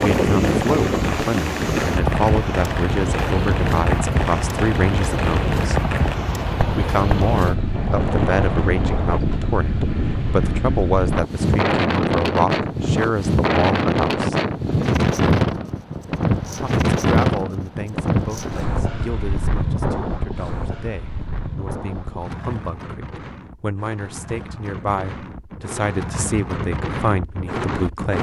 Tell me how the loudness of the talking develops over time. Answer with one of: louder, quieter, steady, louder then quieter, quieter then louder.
quieter then louder.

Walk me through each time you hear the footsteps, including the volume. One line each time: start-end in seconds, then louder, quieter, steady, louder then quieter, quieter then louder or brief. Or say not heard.
not heard.